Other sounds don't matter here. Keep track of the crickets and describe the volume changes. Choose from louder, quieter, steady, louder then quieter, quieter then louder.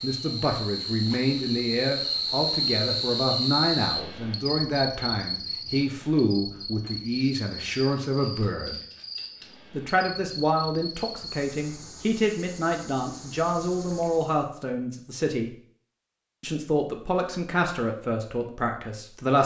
quieter.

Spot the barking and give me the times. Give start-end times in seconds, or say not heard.
not heard.